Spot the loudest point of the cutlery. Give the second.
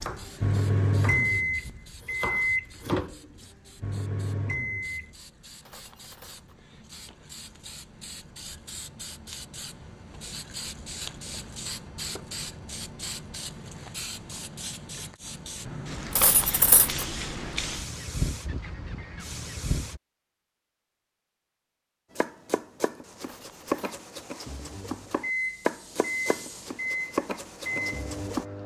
17 s.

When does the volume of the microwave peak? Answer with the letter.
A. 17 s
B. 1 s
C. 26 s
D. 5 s
B.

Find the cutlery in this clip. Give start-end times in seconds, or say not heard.
5.7-6.5, 16.1-17.1, 23.2-24.0.